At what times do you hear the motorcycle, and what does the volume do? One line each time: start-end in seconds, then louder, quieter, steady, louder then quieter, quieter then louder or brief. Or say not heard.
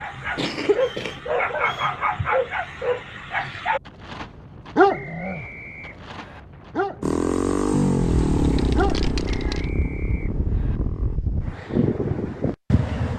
7.0-11.2 quieter.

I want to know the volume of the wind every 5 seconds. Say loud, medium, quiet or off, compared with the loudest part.
quiet, medium, loud.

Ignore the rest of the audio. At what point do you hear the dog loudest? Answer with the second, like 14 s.
5 s.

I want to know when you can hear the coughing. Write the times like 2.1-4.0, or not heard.
0.3-1.2.